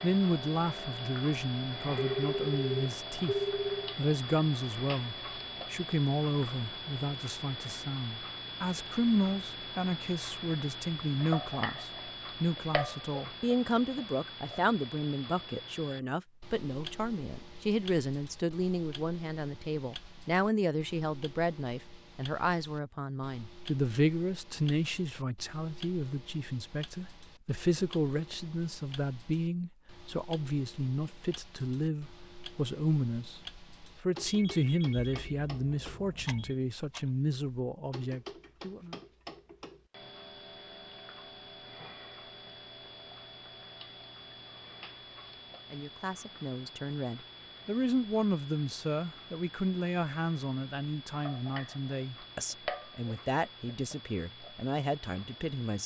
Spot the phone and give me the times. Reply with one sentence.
You can hear the phone from 1.9 to 4.0 s and from 34.2 to 36.5 s.